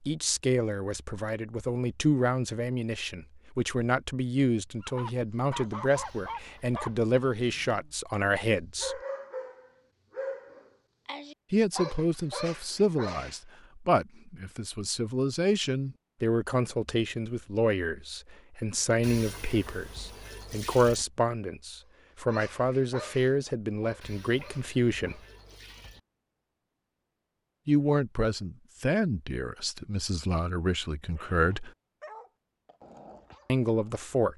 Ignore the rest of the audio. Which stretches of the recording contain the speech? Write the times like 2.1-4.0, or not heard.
0.1-9.0, 11.5-25.2, 27.6-31.7, 33.5-34.3.